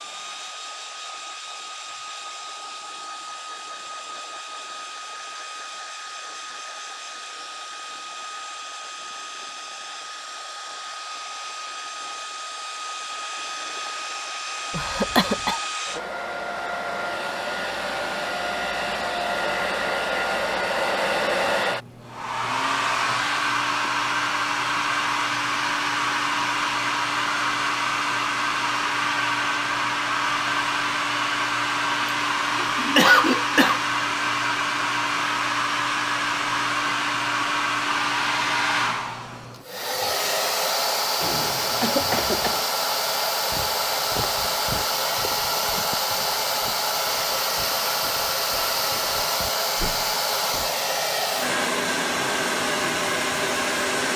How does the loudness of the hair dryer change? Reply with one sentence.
The volume of the hair dryer goes up.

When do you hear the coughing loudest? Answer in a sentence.
The volume of the coughing peaks at 33 seconds.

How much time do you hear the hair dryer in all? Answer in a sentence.
You can hear the hair dryer for 54 seconds altogether.